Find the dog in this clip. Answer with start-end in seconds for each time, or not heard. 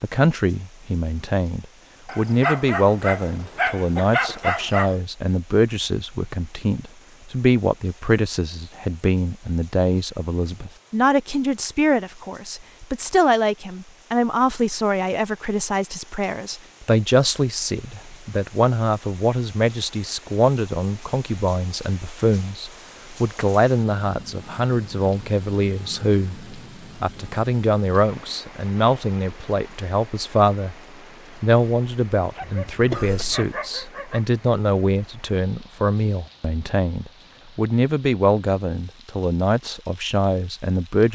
2.0-5.0, 32.4-34.2.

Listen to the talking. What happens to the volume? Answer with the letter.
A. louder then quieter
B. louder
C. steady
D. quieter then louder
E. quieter
C.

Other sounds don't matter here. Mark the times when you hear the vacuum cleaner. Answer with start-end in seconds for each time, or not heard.
not heard.